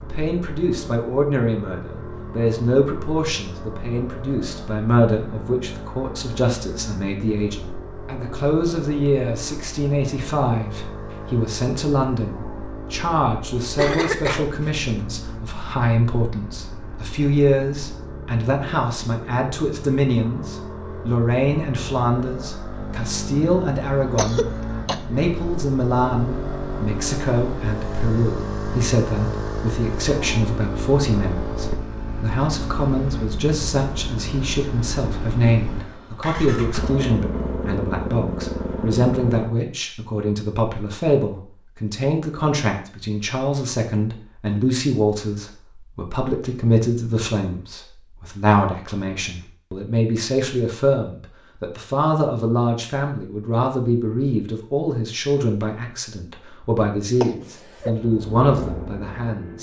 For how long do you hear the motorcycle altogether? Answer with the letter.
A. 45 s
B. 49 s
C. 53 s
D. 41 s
D.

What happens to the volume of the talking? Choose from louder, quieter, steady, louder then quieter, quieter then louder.
steady.